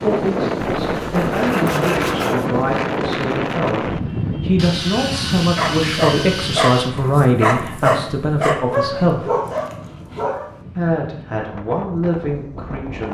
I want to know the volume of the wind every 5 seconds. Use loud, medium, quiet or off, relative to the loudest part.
loud, medium, quiet.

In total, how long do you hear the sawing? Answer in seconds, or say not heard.
5 s.